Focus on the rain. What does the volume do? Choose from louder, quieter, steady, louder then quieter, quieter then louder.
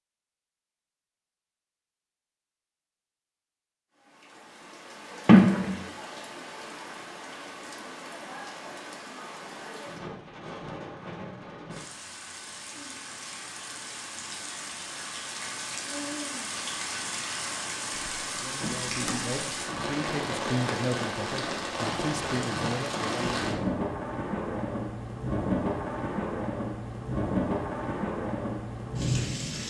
louder.